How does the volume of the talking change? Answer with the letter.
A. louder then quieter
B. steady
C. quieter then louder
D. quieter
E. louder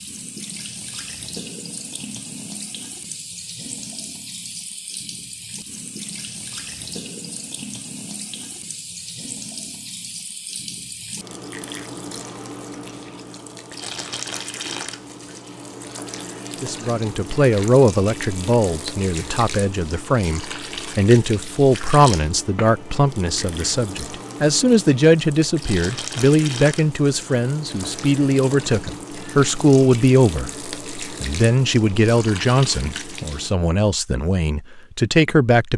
B.